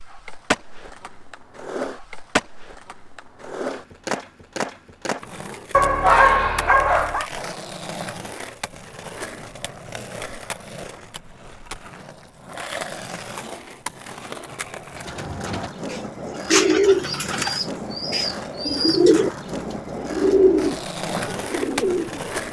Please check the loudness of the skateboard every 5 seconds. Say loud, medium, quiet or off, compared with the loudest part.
loud, medium, medium, loud, loud.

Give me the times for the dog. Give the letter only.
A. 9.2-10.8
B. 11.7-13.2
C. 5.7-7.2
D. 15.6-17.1
C.